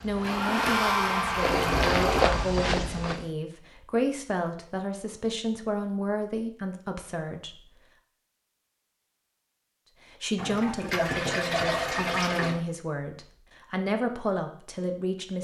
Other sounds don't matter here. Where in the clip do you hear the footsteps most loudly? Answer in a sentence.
The volume of the footsteps peaks at 2 seconds.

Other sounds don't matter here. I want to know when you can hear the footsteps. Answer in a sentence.
The footsteps can be heard from 0.0 to 3.2 s.